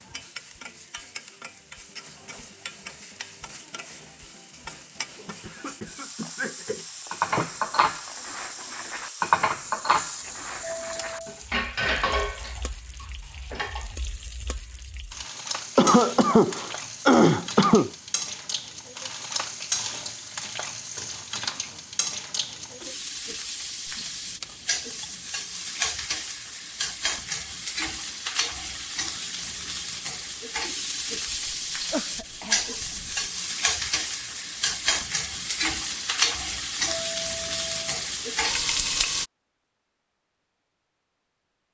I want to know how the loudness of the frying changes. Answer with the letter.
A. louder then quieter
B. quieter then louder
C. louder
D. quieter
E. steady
C.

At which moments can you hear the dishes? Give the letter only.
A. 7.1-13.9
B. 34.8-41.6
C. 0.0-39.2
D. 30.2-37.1
A.